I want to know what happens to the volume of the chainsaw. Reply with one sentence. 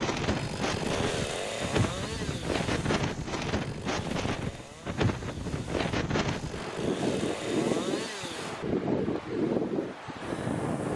The volume of the chainsaw goes down, then up.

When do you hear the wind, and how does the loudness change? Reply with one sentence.
You can hear the wind from 0.0 to 10.9 s, at a steady volume.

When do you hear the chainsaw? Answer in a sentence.
You can hear the chainsaw from 0.2 to 8.6 s.